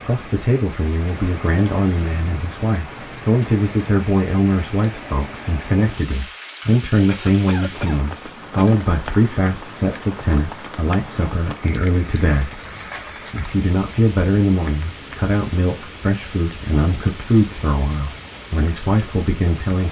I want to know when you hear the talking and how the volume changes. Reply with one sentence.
The talking can be heard from 0.0 to 19.8 s, at a steady volume.